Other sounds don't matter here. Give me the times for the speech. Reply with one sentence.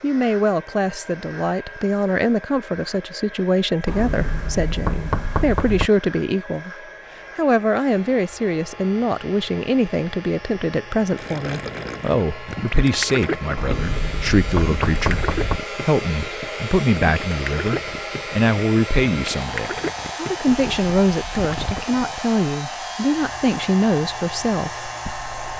The speech can be heard from 0.0 to 6.7 s and from 7.3 to 25.3 s.